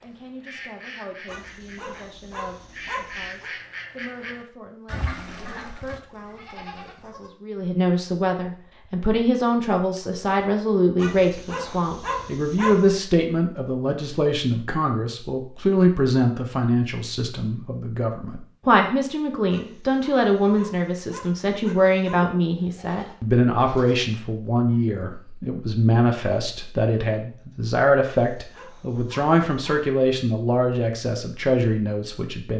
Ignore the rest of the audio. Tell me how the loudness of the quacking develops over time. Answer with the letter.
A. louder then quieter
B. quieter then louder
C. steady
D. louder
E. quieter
B.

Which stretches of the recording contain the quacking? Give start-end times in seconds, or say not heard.
0.0-6.0.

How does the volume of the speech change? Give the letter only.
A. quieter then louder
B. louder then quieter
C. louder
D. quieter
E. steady
C.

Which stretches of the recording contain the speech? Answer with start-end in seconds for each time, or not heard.
0.0-32.5.